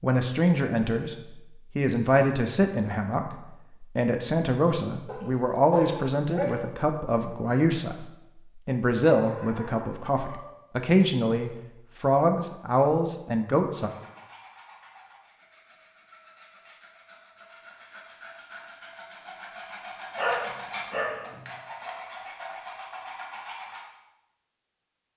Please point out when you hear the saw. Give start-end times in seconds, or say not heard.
13.8-23.9.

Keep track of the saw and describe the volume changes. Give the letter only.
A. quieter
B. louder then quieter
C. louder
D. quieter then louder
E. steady
C.